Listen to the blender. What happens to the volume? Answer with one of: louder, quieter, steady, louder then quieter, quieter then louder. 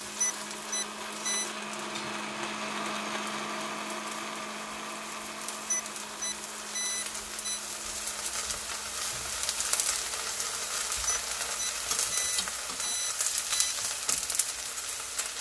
quieter.